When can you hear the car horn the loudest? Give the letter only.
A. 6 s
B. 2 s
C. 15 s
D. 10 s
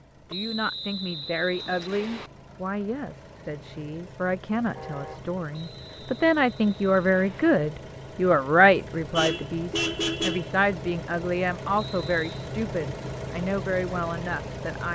D.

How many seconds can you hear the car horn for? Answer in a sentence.
The car horn can be heard for 2 seconds in total.